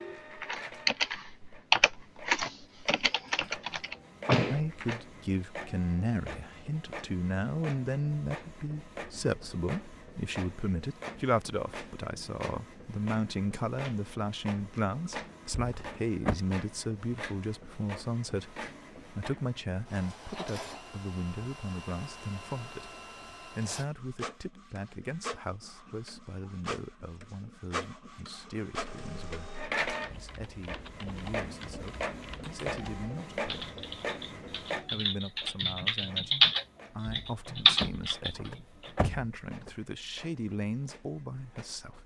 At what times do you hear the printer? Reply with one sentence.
You can hear the printer from 0.0 to 42.0 s.